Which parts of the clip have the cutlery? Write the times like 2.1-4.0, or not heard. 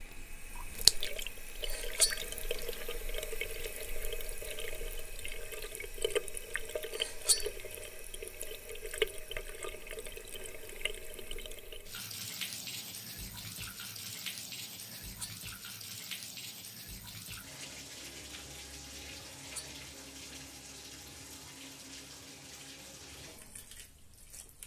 1.6-2.1, 7.0-7.5, 14.8-15.3, 19.2-19.7.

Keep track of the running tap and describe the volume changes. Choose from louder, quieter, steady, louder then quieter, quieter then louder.
quieter.